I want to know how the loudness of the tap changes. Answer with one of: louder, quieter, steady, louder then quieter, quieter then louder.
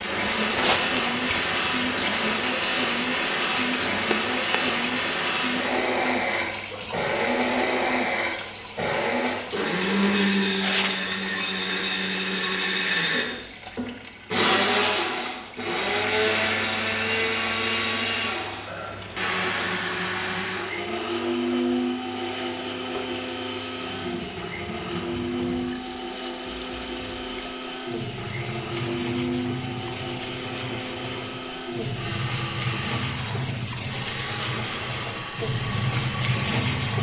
quieter then louder.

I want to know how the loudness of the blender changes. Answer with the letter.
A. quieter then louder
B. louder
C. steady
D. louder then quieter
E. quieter
E.